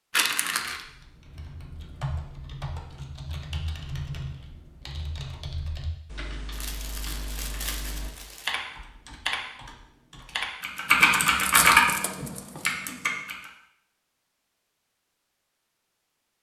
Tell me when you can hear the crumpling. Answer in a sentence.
You can hear the crumpling from 0.1 to 0.8 s, from 6.5 to 8.6 s and from 11.0 to 12.8 s.